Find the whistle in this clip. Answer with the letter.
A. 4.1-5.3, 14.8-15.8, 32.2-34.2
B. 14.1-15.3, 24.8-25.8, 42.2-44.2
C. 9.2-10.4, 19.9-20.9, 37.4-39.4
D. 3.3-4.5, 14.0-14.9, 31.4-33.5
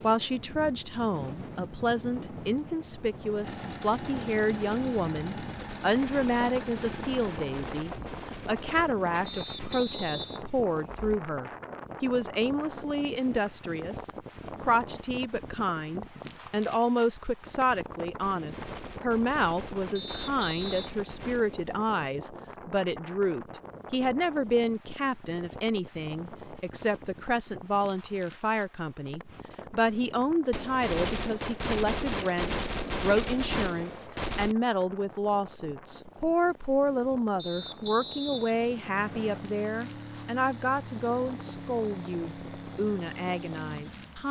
C.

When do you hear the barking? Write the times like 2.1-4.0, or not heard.
not heard.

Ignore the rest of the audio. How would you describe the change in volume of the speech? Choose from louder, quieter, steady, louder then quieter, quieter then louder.
steady.